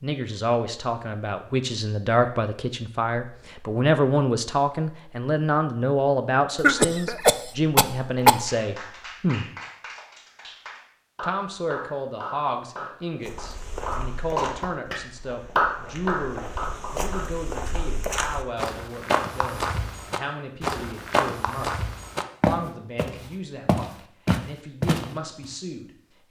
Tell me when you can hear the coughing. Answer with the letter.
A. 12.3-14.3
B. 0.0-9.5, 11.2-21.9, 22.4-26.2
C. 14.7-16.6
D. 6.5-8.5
D.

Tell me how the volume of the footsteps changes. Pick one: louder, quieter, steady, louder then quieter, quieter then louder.
louder.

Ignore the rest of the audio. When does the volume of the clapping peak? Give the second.
16 s.